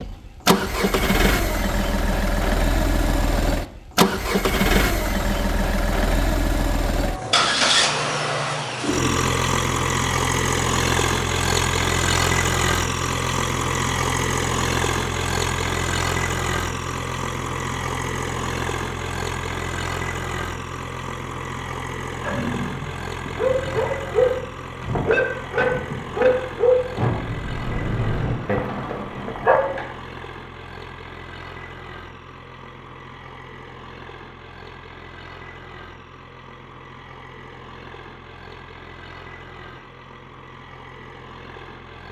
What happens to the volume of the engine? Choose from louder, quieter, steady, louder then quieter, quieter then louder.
quieter.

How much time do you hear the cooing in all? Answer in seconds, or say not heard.
4 s.